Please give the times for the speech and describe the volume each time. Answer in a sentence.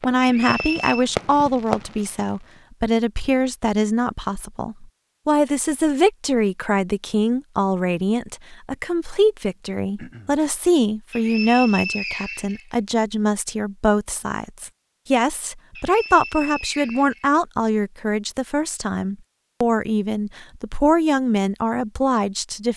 The speech can be heard from 0.0 to 22.7 s, at a steady volume.